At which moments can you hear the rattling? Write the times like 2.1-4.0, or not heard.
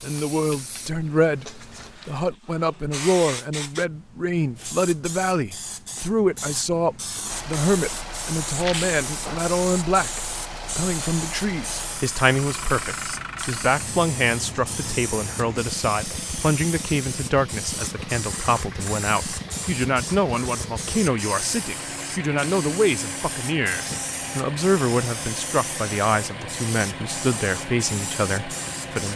8.6-9.0.